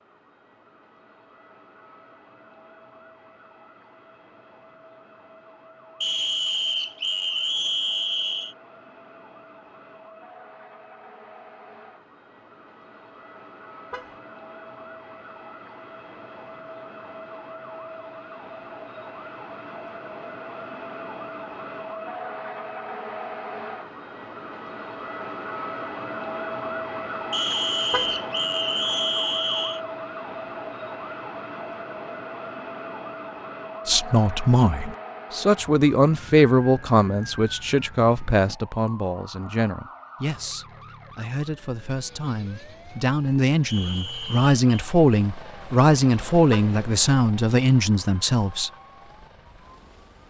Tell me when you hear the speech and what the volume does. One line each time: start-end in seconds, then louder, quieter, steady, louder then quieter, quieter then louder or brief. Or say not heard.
33.9-48.7 quieter then louder.